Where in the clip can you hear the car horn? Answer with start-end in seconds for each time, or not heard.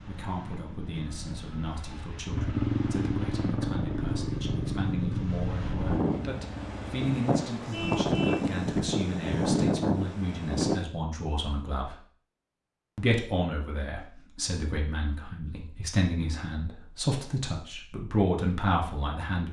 7.7-8.5.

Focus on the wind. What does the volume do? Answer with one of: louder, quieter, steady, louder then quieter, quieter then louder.
louder.